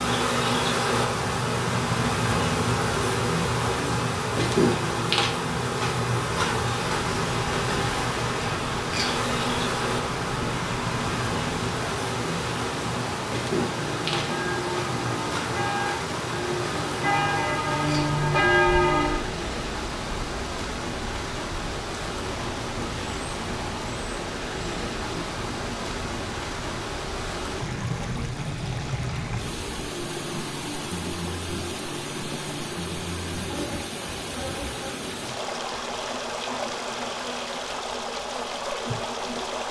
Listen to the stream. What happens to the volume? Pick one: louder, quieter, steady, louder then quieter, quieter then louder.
steady.